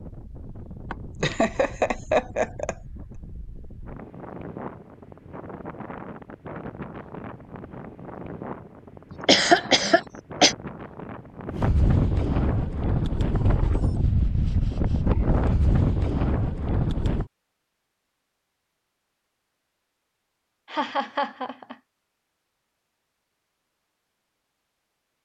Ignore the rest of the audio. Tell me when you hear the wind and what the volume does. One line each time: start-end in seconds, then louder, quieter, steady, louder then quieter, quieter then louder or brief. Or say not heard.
0.0-17.2 louder.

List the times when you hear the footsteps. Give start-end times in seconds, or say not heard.
not heard.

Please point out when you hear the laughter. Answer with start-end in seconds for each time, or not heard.
0.9-2.8, 9.2-10.6, 20.6-21.8.